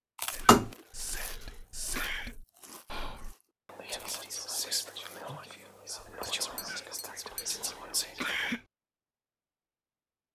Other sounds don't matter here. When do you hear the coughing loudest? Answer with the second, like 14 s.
8 s.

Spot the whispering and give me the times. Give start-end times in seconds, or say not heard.
0.3-8.6.